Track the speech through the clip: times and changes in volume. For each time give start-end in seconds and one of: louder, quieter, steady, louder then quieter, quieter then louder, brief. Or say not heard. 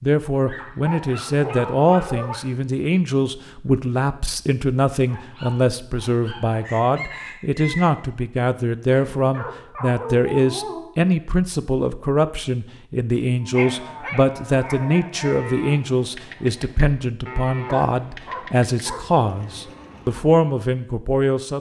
0.0-21.5 steady.